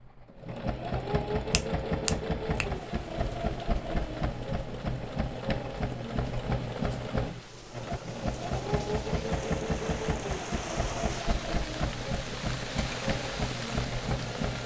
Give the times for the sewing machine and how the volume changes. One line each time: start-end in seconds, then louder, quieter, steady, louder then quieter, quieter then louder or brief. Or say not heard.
0.0-14.6 steady.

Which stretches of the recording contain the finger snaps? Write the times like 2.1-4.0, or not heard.
1.5-2.8.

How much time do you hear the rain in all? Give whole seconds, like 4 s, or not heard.
12 s.